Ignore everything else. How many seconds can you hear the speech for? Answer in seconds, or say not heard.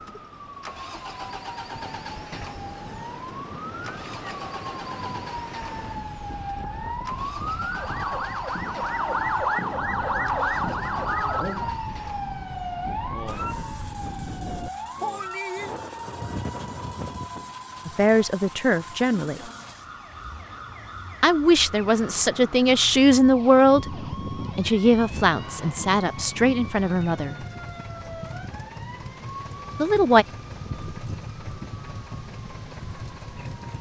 8 s.